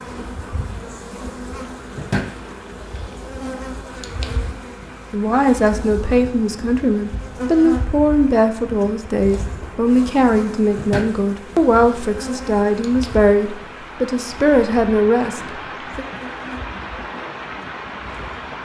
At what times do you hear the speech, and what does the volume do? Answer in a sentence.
The speech can be heard from 5.1 to 16.1 s, at a steady volume.